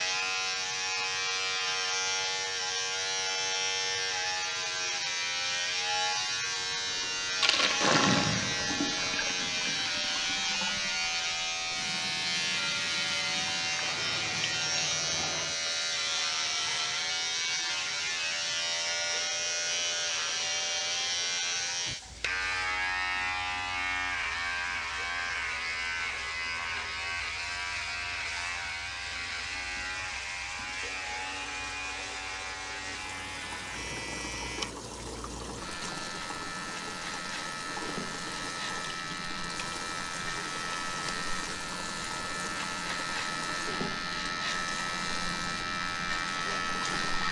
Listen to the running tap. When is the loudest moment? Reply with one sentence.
The loudest moment of the running tap is at 8 seconds.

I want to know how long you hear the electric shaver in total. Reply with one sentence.
You can hear the electric shaver for 47 seconds altogether.